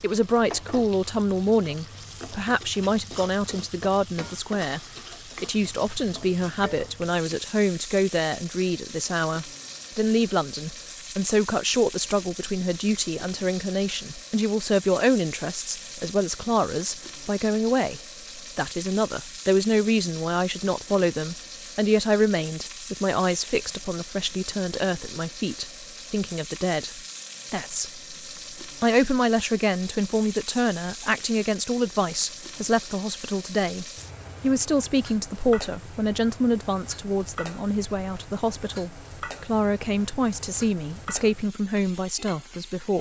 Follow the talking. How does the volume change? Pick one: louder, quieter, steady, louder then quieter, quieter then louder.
steady.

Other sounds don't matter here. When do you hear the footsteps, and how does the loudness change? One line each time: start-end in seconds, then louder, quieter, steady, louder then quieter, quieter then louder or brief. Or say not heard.
not heard.